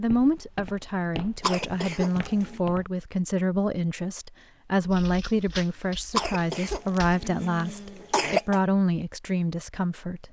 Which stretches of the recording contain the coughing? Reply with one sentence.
You can hear the coughing from 1.4 to 2.6 s and from 6.2 to 8.6 s.